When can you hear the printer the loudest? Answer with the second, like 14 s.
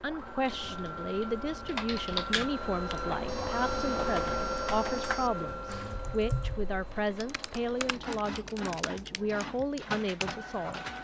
4 s.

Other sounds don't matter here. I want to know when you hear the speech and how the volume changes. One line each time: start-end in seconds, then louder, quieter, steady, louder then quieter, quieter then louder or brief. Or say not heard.
0.0-10.8 steady.